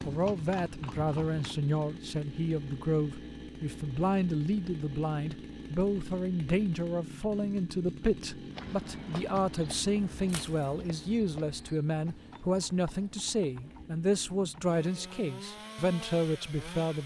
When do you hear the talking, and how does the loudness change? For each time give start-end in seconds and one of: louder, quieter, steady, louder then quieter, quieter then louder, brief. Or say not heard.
0.0-17.0 steady.